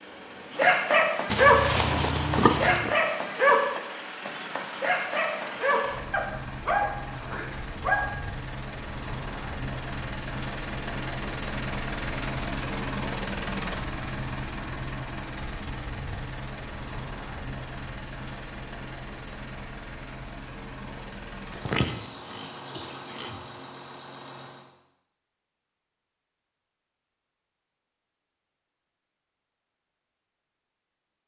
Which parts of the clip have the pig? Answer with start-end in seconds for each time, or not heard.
1.2-3.0, 21.5-23.4.